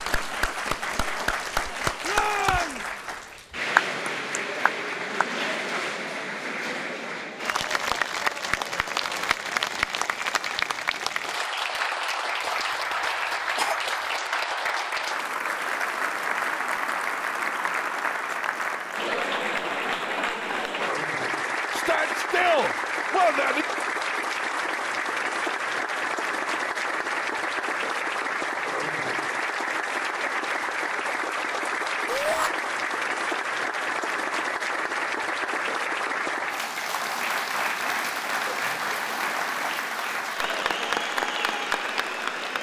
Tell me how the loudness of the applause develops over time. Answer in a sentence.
The volume of the applause stays about the same.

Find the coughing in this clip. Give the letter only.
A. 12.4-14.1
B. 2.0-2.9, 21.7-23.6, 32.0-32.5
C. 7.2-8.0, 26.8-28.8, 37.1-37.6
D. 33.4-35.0
A.